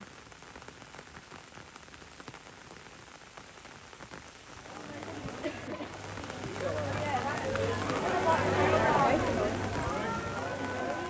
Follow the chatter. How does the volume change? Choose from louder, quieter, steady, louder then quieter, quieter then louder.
louder then quieter.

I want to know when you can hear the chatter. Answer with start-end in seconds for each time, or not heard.
4.6-11.0.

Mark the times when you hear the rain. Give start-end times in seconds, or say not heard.
0.0-11.0.